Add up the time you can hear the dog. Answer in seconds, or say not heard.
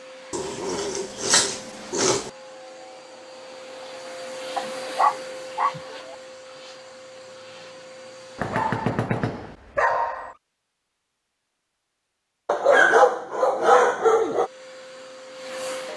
8 s.